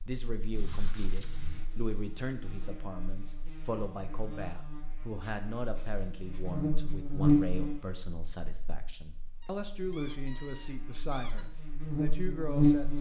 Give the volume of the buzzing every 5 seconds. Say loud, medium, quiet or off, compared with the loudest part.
quiet, loud, loud.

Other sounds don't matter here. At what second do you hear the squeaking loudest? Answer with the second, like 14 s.
1 s.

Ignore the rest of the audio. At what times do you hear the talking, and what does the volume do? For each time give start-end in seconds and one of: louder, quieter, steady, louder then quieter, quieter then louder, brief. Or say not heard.
0.0-12.9 steady.